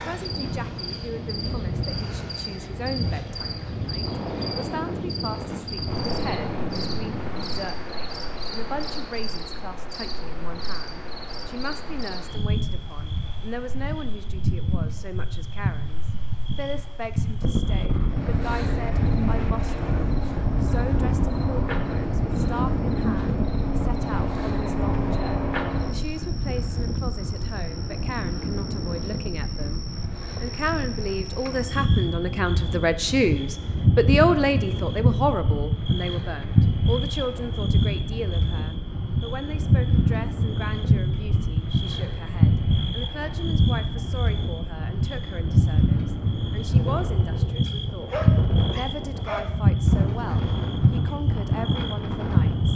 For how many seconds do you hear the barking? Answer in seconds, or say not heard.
2 s.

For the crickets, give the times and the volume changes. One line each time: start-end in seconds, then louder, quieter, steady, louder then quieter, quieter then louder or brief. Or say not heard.
0.0-52.7 louder.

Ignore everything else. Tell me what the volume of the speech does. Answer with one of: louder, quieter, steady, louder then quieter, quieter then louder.
louder then quieter.